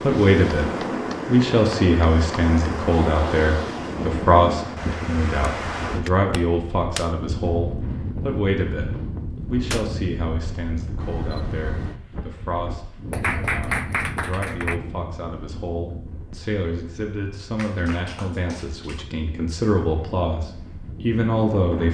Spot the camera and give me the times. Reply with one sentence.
You can hear the camera from 11.0 to 12.0 s.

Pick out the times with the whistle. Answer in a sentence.
The whistle can't be heard in this clip.